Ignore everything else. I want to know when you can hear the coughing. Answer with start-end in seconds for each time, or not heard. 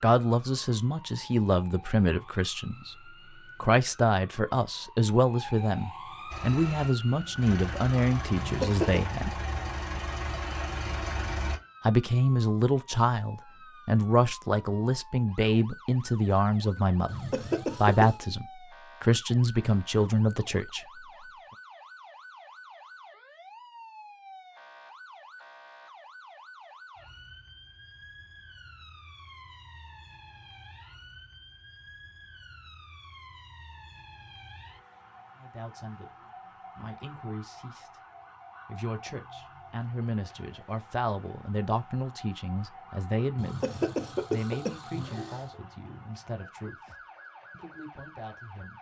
8.3-9.1, 17.1-18.1, 43.4-45.4.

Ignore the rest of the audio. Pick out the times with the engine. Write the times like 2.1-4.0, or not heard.
6.3-11.6.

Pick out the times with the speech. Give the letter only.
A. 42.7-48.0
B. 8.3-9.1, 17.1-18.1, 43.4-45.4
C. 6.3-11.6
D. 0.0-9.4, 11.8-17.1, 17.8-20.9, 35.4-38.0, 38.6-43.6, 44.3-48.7
D.